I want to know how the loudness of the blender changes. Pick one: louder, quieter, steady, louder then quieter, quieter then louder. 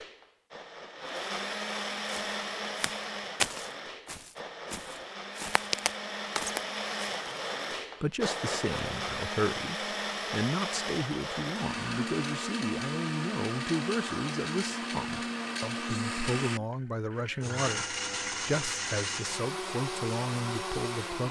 steady.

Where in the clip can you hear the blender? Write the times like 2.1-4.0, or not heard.
0.0-21.2.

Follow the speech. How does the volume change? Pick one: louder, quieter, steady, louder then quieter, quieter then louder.
steady.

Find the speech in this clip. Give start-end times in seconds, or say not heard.
8.0-21.2.